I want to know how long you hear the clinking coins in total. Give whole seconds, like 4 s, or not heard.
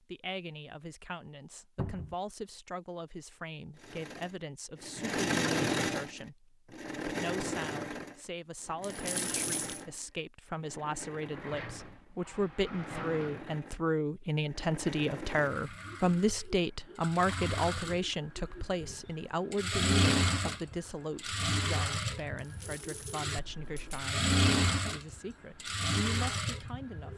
3 s.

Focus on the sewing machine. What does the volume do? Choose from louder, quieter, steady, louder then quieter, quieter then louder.
quieter then louder.